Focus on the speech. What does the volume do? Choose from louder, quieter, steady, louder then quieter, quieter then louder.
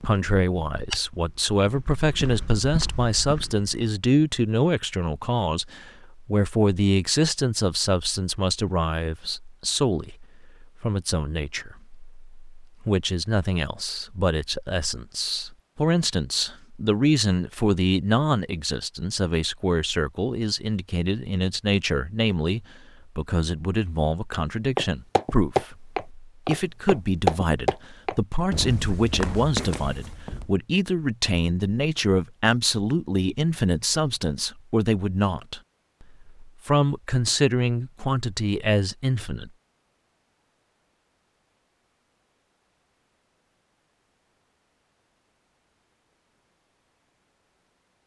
steady.